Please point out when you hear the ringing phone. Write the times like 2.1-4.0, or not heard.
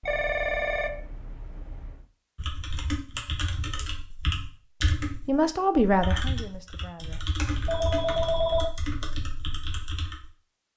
0.0-2.0, 7.7-8.8.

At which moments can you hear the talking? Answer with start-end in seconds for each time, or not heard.
5.2-8.0.